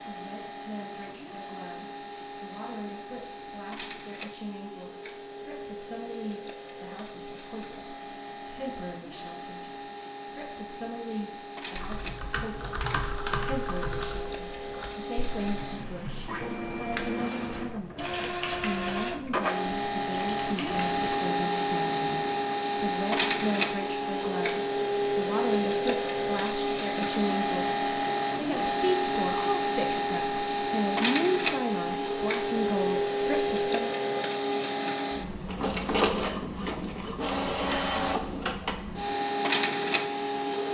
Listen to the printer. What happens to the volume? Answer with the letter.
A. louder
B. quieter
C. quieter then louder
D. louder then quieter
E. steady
A.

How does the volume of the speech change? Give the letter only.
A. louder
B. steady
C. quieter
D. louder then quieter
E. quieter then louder
A.